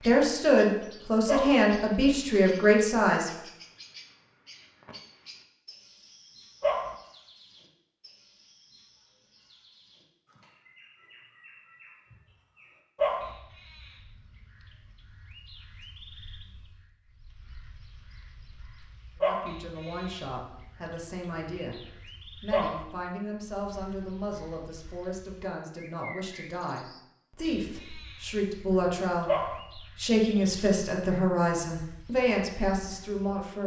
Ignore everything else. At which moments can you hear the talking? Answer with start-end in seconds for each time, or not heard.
0.1-3.3, 19.2-33.6.